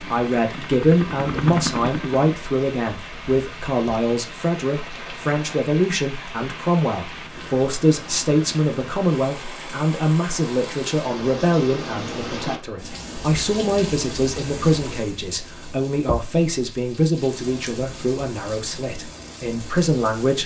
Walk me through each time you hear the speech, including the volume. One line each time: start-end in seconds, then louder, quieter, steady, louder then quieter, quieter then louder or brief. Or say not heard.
0.0-20.4 steady.